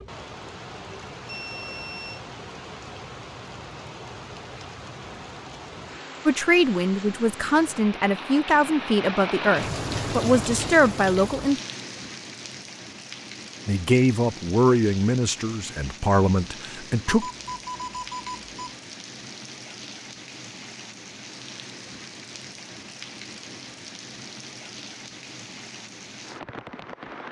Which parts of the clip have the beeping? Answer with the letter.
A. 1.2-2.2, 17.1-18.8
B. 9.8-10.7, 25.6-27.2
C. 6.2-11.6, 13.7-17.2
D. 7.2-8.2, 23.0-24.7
A.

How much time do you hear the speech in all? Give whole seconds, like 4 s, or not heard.
9 s.